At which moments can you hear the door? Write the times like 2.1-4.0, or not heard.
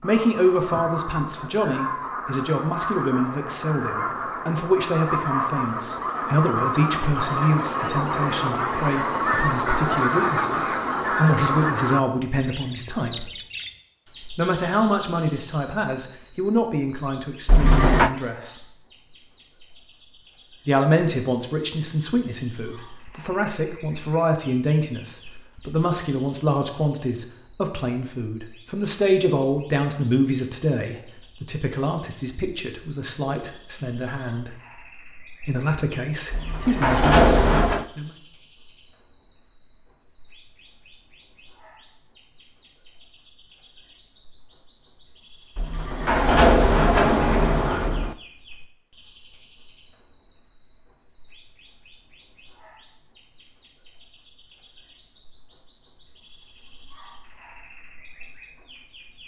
17.4-18.1, 36.3-37.9, 45.5-48.1.